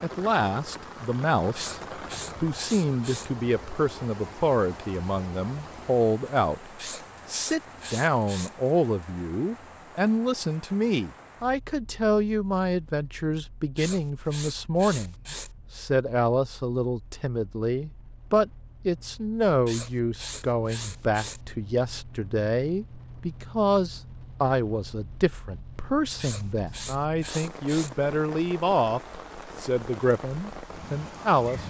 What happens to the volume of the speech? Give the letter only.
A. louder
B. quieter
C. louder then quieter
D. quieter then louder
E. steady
E.